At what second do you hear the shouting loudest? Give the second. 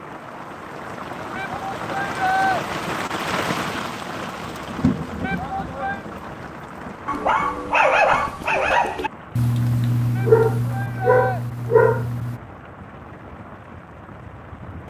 2 s.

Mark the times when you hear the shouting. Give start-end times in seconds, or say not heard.
1.4-2.6, 5.2-6.0, 10.2-11.4.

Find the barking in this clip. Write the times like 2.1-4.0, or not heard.
7.0-12.4.